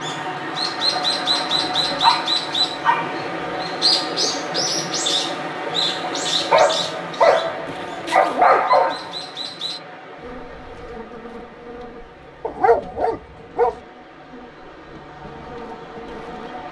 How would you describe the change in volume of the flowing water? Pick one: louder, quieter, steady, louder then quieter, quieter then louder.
quieter.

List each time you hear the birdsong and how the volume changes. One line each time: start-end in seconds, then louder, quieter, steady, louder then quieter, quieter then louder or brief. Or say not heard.
0.0-9.8 quieter.